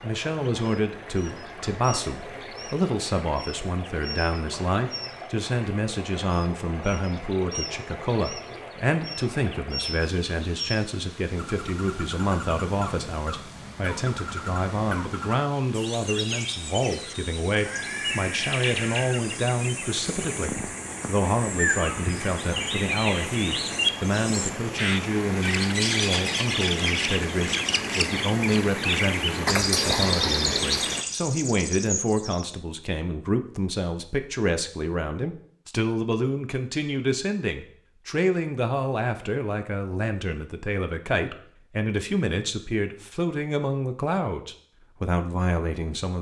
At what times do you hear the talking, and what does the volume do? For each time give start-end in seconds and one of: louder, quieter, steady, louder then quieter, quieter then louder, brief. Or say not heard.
0.0-46.1 steady.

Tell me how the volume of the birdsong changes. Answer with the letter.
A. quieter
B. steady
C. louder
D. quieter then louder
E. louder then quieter
C.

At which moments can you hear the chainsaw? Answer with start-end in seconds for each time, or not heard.
not heard.